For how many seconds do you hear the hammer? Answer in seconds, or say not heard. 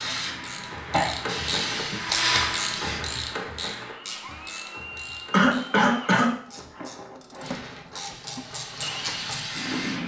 not heard.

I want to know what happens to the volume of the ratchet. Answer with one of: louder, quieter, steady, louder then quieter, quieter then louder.
quieter then louder.